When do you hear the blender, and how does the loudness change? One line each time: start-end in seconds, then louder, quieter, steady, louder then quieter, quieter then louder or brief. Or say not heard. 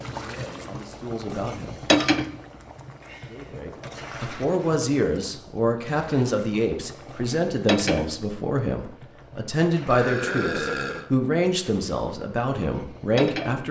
not heard.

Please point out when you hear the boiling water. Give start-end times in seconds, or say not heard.
0.0-13.6.